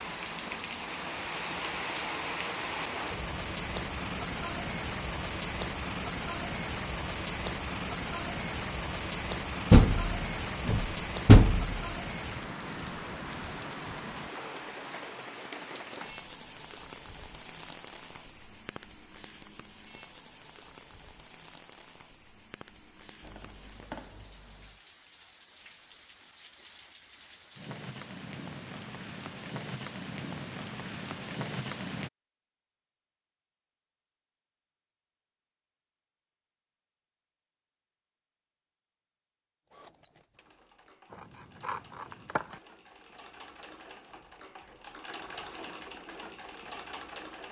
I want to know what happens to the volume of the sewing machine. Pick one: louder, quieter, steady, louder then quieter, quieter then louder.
louder.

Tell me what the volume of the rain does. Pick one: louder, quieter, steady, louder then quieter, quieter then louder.
quieter then louder.